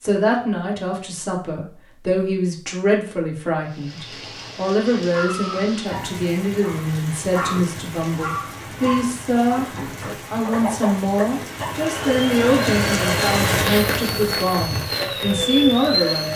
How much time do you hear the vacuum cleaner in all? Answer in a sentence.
You can hear the vacuum cleaner for 5 seconds altogether.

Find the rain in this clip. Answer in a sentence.
The rain can be heard from 3.6 to 16.3 s.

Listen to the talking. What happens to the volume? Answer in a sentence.
The volume of the talking stays about the same.